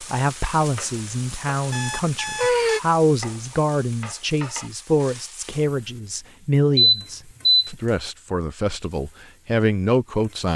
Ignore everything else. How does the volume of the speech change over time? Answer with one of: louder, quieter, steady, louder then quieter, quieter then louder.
steady.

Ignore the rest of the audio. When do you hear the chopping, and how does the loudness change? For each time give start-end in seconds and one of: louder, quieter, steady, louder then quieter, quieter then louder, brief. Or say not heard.
not heard.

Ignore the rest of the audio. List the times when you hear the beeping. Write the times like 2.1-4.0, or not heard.
1.7-2.8, 6.8-7.8.